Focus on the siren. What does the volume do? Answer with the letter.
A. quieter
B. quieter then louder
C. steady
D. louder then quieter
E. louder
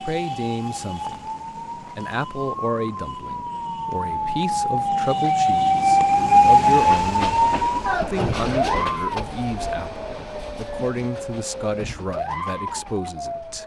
D.